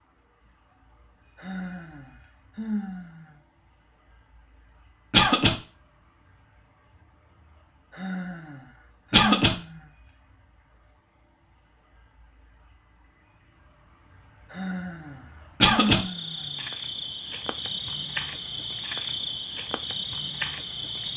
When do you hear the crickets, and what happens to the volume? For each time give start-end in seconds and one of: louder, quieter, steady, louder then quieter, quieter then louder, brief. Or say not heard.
0.0-21.1 louder.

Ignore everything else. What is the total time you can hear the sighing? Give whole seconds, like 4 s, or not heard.
6 s.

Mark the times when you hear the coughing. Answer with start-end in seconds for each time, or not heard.
5.1-5.5, 9.1-9.6, 15.6-16.0.